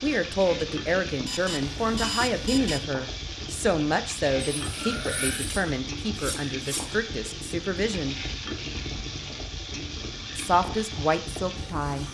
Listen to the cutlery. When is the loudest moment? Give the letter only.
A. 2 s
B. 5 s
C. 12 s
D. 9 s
B.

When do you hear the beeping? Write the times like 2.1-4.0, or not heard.
1.2-2.9.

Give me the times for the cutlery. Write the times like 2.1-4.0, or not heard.
4.5-6.8.